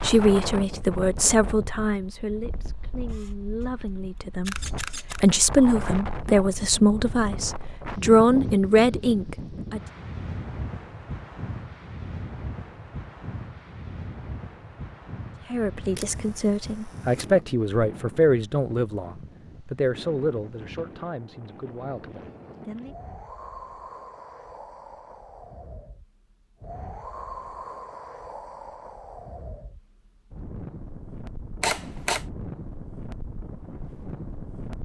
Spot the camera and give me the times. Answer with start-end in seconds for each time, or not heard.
3.0-3.6, 4.5-5.3, 15.9-17.3, 31.6-32.2.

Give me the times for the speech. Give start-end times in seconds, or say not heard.
0.0-9.8, 15.5-22.9.